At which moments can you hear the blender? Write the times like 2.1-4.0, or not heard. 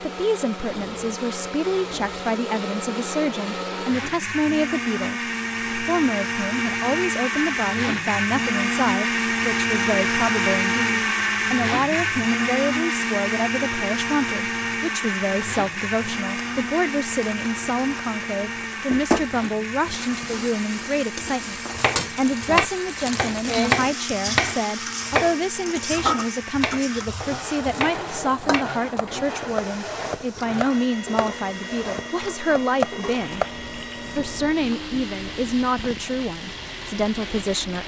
0.0-37.8.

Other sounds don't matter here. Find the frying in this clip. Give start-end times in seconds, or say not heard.
15.2-37.8.